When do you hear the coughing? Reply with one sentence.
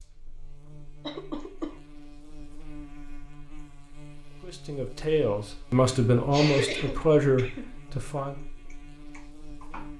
The coughing can be heard from 1.0 to 1.8 s and from 6.3 to 7.8 s.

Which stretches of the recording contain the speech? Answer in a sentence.
The speech can be heard from 4.4 to 8.4 s.